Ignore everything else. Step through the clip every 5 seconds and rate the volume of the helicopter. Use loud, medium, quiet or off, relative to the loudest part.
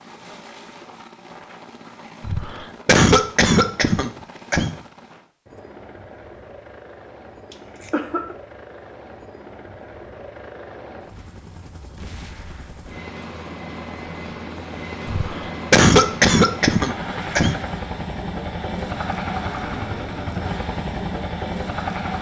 quiet, quiet, medium, loud, loud.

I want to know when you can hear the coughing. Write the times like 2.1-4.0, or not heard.
2.2-4.8, 7.5-8.3, 15.1-17.6.